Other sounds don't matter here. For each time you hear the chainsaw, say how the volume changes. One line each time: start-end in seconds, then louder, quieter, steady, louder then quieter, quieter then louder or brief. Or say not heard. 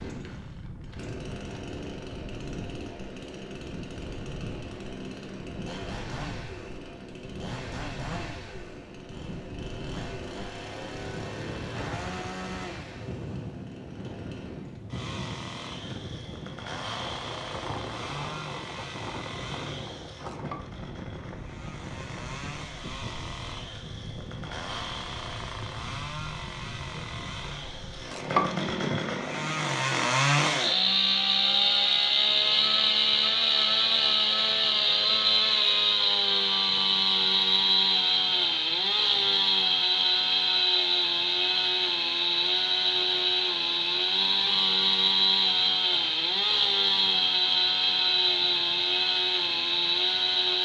0.0-50.6 louder.